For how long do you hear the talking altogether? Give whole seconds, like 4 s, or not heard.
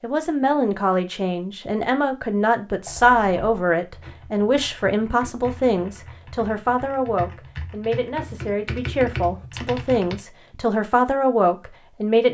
12 s.